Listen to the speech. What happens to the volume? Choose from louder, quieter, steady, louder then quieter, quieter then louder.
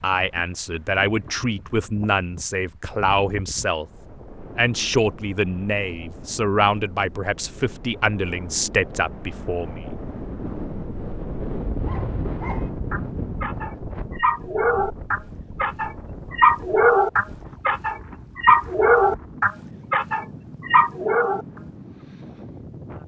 steady.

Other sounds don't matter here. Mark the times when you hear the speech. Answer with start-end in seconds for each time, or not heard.
0.0-3.9, 4.5-9.8.